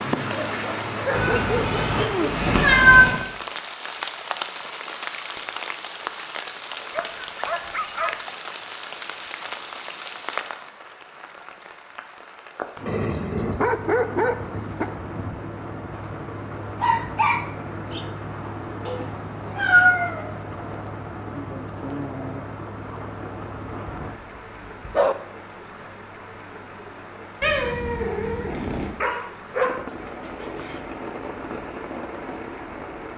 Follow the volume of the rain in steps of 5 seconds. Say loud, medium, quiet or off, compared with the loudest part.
loud, loud, medium, medium, medium, medium, medium.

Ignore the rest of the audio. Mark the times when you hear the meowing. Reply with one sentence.
The meowing can be heard from 1.1 to 3.2 s, from 18.9 to 20.3 s and from 27.4 to 28.9 s.